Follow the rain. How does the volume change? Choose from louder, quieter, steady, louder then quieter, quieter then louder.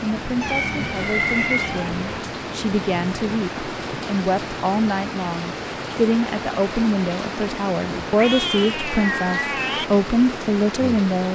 steady.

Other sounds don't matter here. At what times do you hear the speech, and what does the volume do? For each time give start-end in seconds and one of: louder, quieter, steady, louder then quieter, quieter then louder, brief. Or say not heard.
0.0-11.3 louder.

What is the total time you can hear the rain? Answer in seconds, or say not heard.
11 s.